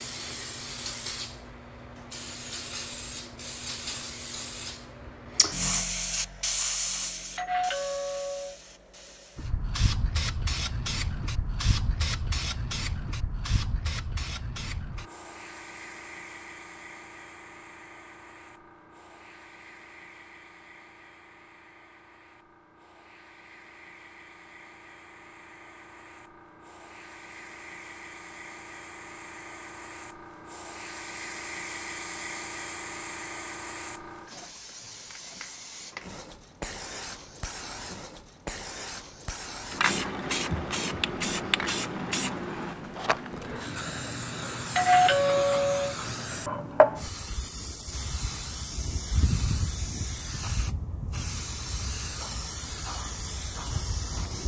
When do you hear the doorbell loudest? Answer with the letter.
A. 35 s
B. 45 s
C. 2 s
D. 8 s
B.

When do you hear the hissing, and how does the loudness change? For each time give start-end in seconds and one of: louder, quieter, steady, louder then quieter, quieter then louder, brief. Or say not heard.
0.0-54.4 quieter then louder.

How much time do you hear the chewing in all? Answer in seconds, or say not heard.
not heard.